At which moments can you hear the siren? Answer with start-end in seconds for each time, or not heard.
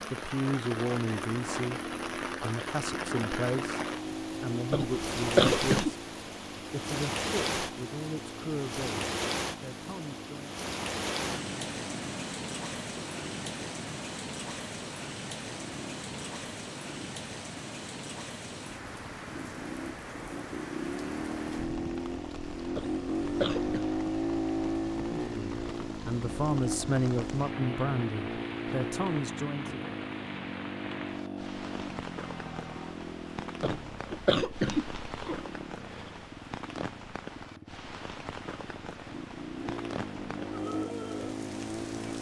not heard.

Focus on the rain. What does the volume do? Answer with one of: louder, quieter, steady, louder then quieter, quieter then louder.
quieter.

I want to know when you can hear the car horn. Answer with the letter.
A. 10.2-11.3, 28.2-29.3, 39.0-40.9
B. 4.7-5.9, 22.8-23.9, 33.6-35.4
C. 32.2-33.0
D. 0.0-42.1
C.